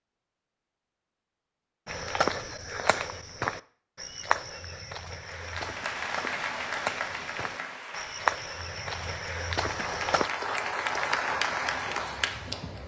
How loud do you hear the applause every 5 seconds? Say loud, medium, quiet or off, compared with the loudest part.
off, medium, loud.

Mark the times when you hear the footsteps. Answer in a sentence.
You can hear the footsteps from 1.9 to 10.3 s.